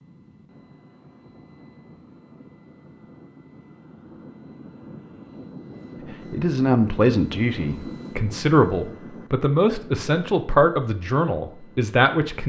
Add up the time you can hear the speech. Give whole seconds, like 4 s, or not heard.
6 s.